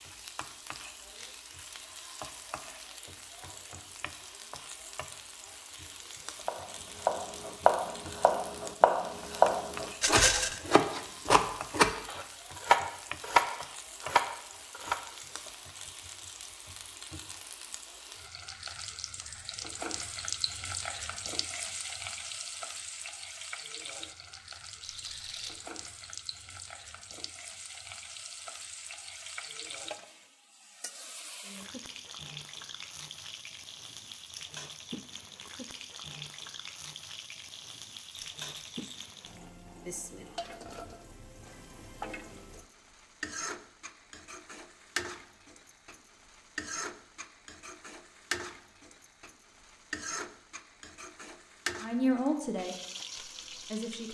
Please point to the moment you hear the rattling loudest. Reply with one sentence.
The loudest moment of the rattling is at 10 seconds.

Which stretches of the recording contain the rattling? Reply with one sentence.
The rattling can be heard from 10.0 to 10.6 s, from 24.8 to 25.7 s and from 38.1 to 39.1 s.